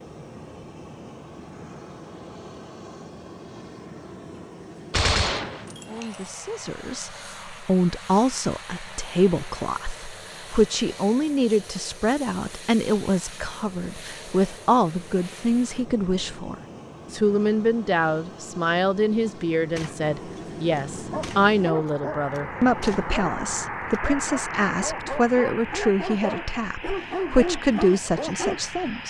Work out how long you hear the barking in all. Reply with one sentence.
The barking can be heard for 8 seconds in total.